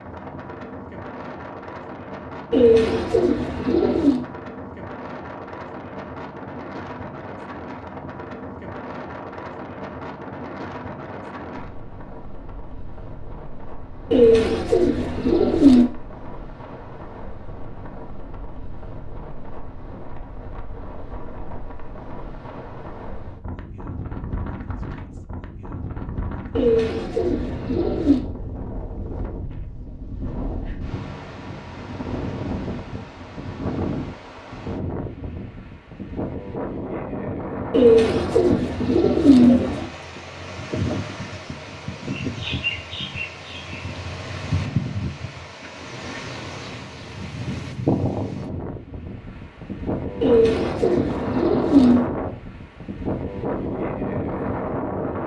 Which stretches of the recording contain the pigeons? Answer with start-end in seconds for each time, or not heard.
2.5-4.2, 14.1-15.8, 26.6-28.2, 37.7-39.9, 50.2-52.1.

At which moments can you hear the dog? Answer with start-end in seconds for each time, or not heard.
not heard.